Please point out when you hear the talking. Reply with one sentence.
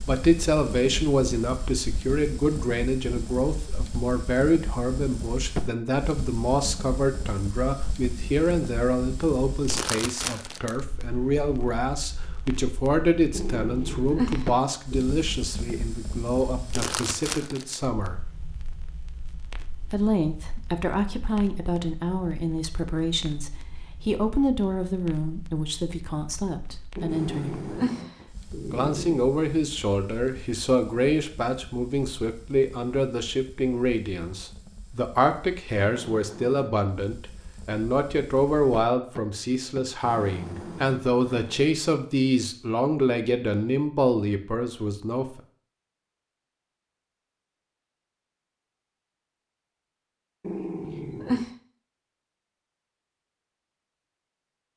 You can hear the talking from 0.0 to 18.2 s, from 19.9 to 27.6 s and from 28.7 to 45.4 s.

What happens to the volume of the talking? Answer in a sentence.
The volume of the talking stays about the same.